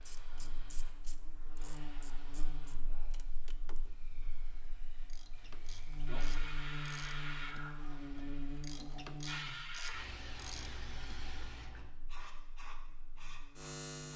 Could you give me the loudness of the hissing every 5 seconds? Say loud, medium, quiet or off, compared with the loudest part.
quiet, loud, loud.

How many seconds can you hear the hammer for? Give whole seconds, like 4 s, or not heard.
not heard.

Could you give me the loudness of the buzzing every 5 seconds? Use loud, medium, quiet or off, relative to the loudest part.
medium, loud, loud.